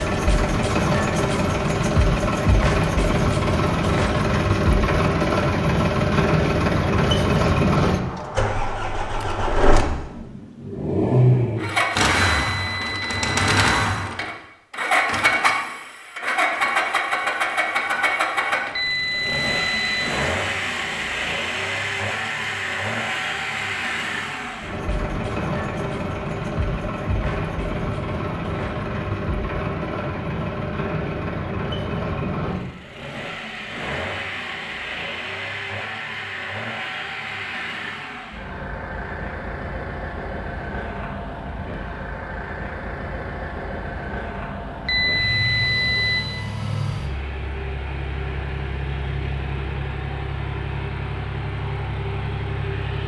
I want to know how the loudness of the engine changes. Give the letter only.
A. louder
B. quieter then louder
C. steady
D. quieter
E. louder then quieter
D.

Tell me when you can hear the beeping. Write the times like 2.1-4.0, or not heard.
12.2-13.8, 18.8-20.1, 44.9-46.2.